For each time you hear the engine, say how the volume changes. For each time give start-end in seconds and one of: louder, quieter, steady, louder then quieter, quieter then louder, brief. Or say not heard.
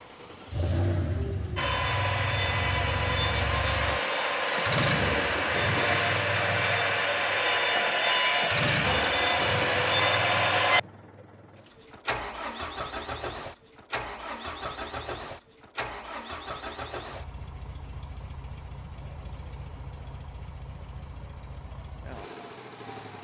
0.0-23.1 quieter.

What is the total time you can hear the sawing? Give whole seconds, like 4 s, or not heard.
9 s.